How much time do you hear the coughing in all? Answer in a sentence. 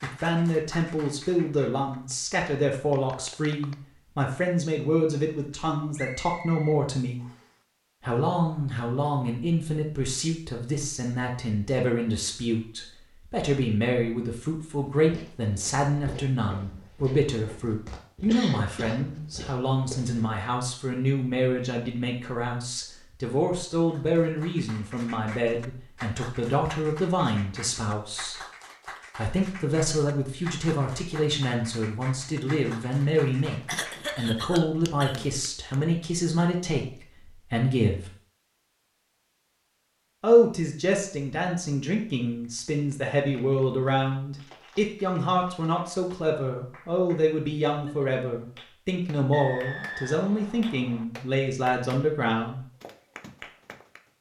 You can hear the coughing for 3 seconds altogether.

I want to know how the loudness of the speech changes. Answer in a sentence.
The loudness of the speech stays about the same.